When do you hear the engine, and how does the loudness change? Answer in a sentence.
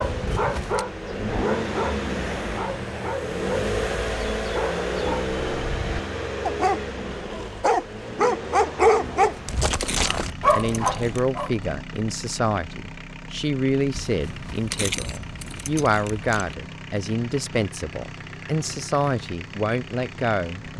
The engine can be heard from 0.0 to 20.7 s, getting quieter.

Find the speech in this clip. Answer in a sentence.
The speech can be heard from 10.0 to 20.7 s.